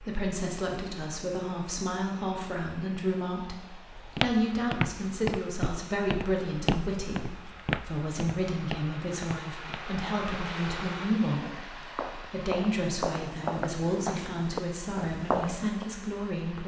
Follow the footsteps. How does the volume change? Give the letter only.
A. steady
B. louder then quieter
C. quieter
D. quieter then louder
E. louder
D.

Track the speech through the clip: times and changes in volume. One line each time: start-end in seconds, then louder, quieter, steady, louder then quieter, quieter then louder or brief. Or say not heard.
0.0-16.6 steady.